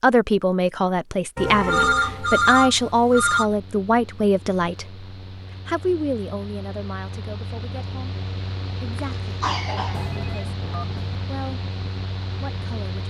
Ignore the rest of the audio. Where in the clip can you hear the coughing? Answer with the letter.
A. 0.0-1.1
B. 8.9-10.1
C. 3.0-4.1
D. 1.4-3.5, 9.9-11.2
B.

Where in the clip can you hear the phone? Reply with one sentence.
The phone can be heard from 1.4 to 3.5 s and from 9.9 to 11.2 s.